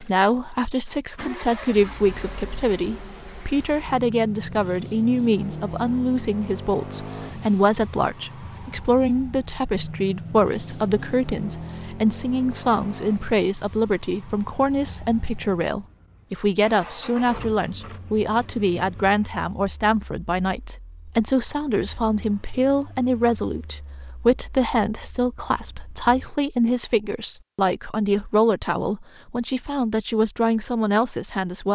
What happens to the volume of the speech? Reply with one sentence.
The volume of the speech stays about the same.